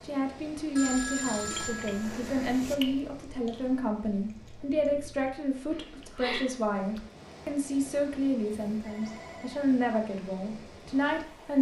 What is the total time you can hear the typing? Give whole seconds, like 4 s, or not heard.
not heard.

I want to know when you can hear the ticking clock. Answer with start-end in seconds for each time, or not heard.
not heard.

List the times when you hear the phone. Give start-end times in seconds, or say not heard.
0.8-2.8, 8.7-9.7.